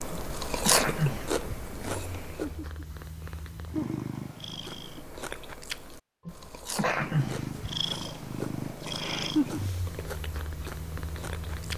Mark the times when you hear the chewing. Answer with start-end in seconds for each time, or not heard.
0.0-2.8, 4.5-11.7.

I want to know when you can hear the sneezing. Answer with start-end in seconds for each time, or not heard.
0.1-1.6, 6.2-7.7.